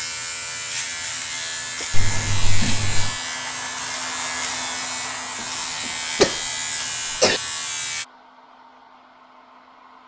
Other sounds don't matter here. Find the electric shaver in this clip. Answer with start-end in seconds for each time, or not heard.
0.0-8.1.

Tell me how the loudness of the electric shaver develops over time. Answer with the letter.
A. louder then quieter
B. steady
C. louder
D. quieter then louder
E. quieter
B.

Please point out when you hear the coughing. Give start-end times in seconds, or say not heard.
1.9-3.1, 6.2-7.4.